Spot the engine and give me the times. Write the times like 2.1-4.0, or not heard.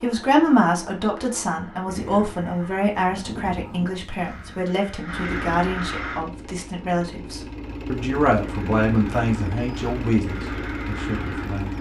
5.0-11.7.